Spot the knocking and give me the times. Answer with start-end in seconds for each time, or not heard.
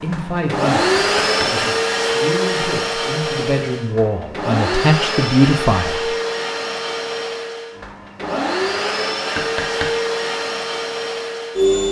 0.9-1.6, 9.3-9.9.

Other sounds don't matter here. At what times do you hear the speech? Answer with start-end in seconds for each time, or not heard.
0.0-6.1.